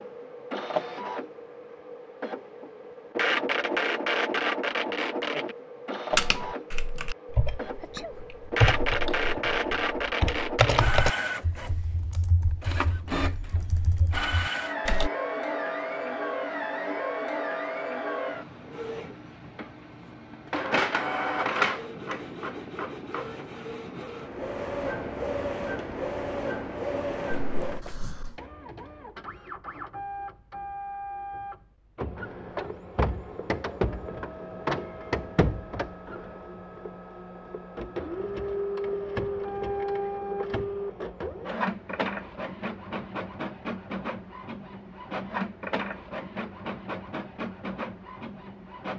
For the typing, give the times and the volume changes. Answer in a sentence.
The typing can be heard from 6.1 to 15.1 s, getting louder then quieter.